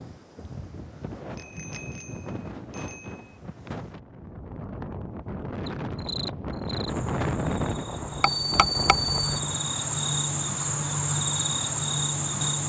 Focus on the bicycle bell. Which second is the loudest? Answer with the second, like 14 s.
9 s.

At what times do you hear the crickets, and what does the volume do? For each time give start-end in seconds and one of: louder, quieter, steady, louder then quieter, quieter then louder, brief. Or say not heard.
5.7-12.6 louder.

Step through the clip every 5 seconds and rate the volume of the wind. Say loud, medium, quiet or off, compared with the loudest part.
medium, loud, off.